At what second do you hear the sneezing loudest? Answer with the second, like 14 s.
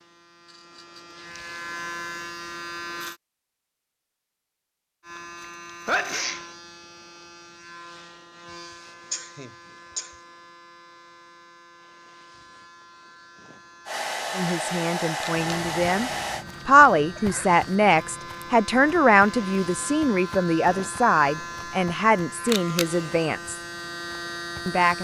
6 s.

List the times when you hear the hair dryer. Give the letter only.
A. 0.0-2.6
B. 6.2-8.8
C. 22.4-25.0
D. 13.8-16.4
D.